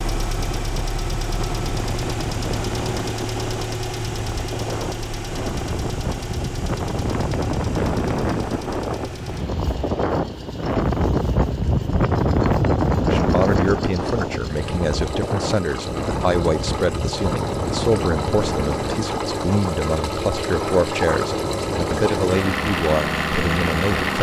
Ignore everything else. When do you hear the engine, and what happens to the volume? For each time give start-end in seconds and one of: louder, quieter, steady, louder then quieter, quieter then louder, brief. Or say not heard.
0.0-24.1 quieter then louder.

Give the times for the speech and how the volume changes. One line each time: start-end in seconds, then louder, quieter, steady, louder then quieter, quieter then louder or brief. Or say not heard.
13.0-24.1 steady.